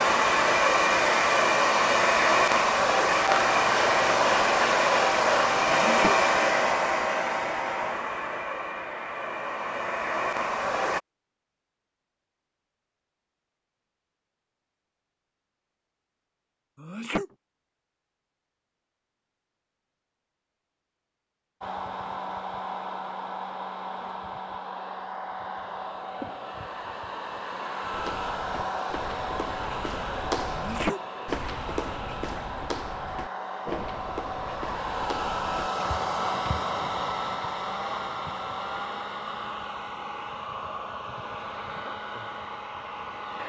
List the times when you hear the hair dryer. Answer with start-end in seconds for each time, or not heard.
0.0-11.0, 21.6-43.4.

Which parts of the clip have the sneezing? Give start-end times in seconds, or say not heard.
5.7-6.2, 16.8-17.2, 30.5-31.0.